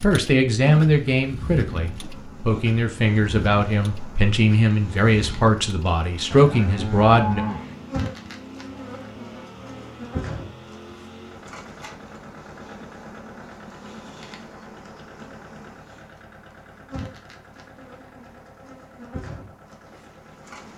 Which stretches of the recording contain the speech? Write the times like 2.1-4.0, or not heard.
0.0-7.5.